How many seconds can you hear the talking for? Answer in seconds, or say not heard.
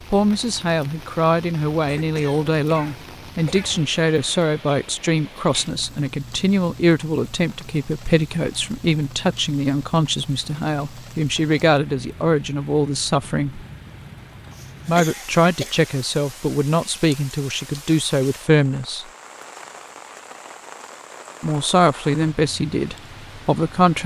20 s.